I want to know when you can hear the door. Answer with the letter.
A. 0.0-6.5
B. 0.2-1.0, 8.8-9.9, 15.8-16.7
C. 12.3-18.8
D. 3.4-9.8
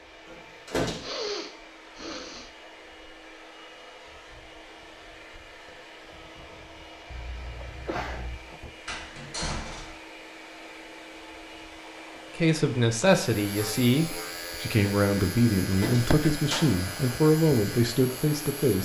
B.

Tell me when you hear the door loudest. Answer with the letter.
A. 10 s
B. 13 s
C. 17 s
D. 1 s
D.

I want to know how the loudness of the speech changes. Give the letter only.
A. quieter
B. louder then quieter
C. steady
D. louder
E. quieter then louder
C.